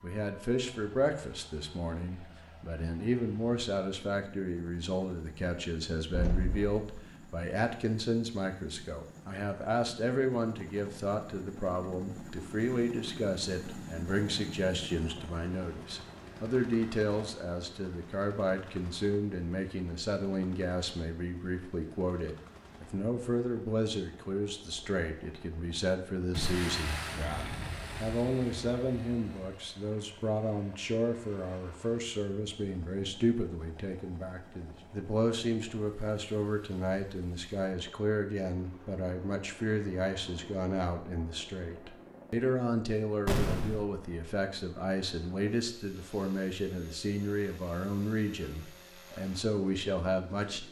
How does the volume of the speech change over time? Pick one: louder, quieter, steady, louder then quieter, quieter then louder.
steady.